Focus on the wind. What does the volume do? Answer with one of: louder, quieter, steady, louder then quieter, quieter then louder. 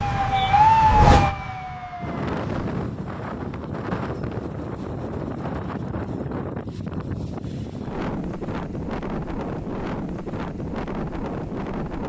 steady.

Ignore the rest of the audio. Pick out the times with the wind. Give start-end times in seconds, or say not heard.
1.9-12.0.